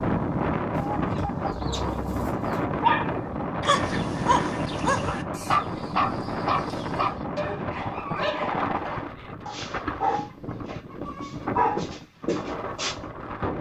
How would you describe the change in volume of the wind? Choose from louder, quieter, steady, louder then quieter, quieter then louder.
quieter.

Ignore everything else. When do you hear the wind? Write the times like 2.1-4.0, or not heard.
0.0-13.5.